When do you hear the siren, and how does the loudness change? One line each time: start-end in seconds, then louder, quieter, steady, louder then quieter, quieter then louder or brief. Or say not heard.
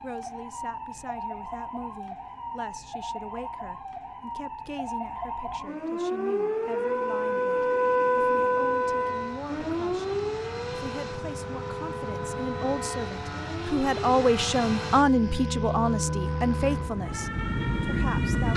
0.0-18.5 louder then quieter.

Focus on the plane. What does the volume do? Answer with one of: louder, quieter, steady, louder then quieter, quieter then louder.
louder.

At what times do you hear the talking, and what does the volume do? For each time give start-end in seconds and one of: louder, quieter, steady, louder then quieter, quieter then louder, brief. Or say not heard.
0.0-18.5 louder.